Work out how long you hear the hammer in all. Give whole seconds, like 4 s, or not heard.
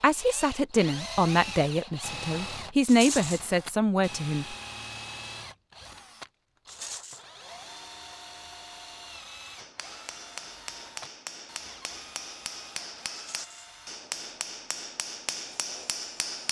7 s.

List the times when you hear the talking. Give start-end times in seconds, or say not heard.
0.0-4.5.